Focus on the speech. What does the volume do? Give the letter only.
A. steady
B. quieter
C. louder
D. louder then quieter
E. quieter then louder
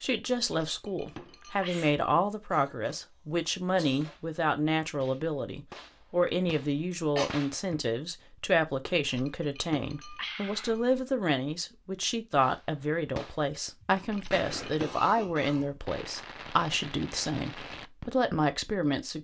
A.